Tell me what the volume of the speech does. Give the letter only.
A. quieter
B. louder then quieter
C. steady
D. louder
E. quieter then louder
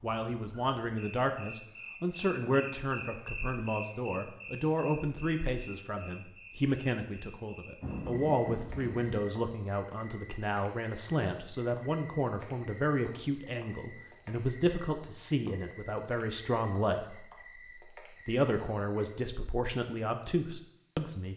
C.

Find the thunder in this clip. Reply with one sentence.
The thunder can be heard from 7.8 to 9.2 s.